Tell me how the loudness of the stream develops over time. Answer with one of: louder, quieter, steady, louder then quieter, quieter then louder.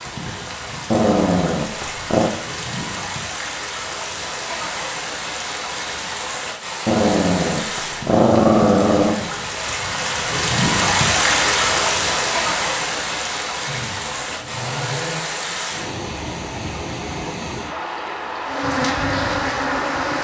louder then quieter.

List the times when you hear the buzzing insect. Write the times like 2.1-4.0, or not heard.
18.4-20.1.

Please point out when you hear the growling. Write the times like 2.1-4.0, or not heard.
0.9-2.3, 6.8-9.2, 13.7-15.2.